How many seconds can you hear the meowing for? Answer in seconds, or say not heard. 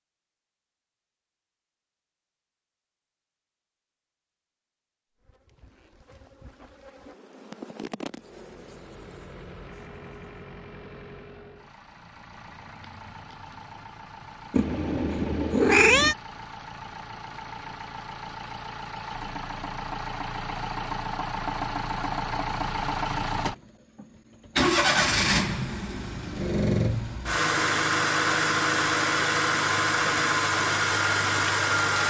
2 s.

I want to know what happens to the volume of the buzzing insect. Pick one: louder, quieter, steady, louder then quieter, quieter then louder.
louder then quieter.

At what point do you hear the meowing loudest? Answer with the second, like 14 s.
16 s.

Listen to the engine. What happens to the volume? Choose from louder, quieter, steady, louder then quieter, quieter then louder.
louder.